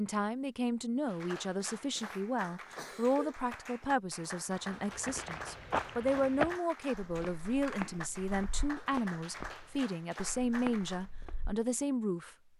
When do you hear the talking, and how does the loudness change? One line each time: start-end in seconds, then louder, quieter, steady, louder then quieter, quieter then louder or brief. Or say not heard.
0.0-12.5 steady.